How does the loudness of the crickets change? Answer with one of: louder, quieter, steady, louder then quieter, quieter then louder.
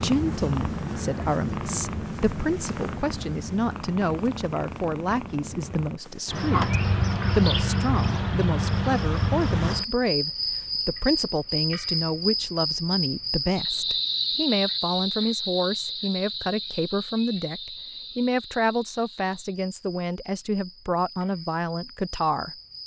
quieter.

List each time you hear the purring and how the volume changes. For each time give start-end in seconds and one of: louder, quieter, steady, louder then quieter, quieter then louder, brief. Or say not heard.
0.0-6.4 quieter.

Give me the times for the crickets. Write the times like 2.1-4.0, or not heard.
6.2-22.8.